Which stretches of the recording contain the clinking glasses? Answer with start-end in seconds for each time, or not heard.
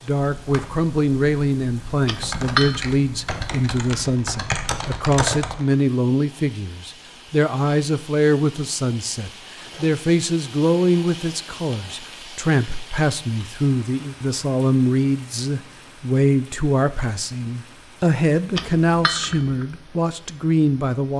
2.0-2.8, 18.6-19.6.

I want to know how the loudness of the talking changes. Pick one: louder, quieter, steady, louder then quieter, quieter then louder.
steady.